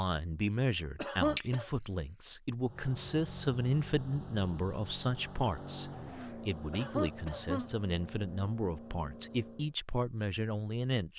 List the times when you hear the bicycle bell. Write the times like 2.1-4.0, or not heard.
1.4-2.2.